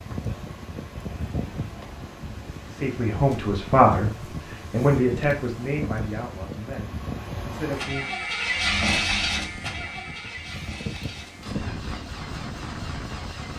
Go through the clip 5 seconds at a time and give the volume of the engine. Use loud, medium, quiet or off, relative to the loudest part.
quiet, loud, medium.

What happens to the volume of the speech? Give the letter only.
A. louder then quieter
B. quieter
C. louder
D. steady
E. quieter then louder
B.